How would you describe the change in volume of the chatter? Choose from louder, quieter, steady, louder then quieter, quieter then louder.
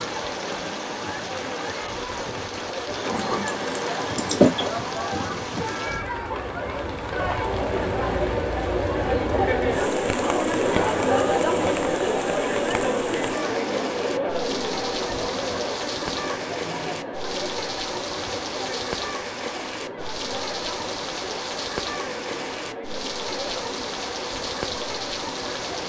louder then quieter.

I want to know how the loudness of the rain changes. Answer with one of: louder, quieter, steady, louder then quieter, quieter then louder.
steady.